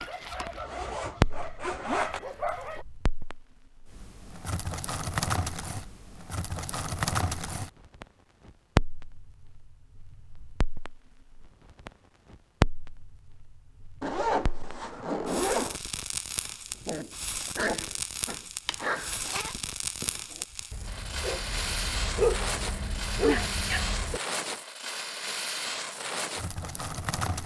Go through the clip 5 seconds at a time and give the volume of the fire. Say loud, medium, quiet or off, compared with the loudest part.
loud, loud, loud, medium, loud, loud.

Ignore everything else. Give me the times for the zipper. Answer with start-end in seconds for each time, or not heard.
0.3-2.2, 14.0-15.8, 18.6-19.6.